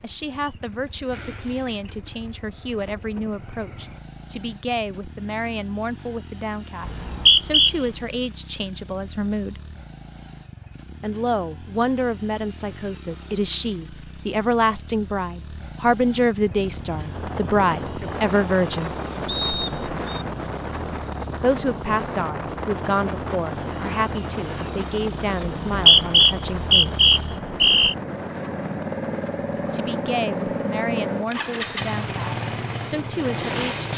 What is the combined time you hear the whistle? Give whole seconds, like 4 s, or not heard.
4 s.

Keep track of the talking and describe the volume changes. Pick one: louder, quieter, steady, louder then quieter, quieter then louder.
louder then quieter.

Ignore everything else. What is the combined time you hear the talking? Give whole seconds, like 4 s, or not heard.
27 s.